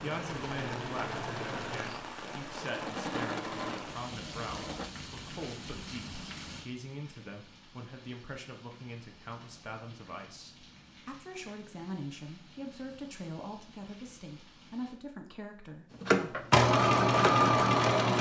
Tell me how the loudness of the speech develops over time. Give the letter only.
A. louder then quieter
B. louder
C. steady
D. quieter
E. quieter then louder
C.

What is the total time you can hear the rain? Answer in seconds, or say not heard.
15 s.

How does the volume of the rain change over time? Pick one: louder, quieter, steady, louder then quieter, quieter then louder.
quieter.